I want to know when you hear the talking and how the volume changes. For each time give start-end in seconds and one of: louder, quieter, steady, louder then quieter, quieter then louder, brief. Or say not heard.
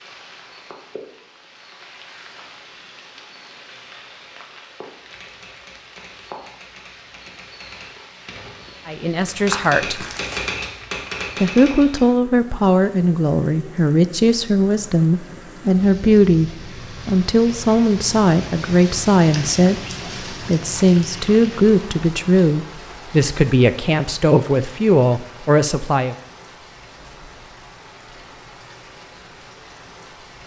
8.8-10.1 brief
11.4-26.1 steady.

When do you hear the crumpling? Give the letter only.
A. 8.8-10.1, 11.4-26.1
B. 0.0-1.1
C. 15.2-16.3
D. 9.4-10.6
D.